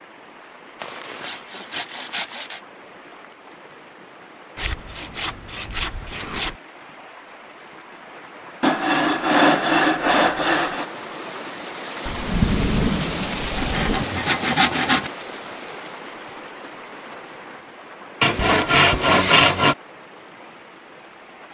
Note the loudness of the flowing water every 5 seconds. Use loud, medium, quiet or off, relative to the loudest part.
quiet, quiet, loud, medium, quiet.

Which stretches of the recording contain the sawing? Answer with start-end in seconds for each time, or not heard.
0.8-2.6, 4.5-6.5, 8.6-10.8, 13.6-15.1, 18.2-19.8.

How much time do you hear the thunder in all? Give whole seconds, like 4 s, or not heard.
2 s.